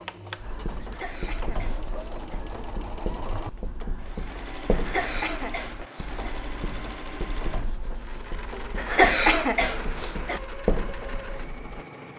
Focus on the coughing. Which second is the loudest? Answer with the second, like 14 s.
9 s.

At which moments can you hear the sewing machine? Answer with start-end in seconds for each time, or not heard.
0.0-12.1.